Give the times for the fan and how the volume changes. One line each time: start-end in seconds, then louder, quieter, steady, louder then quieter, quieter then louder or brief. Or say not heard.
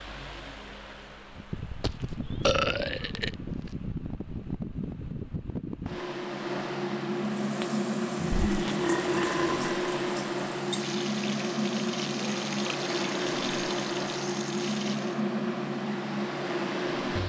0.0-17.2 louder.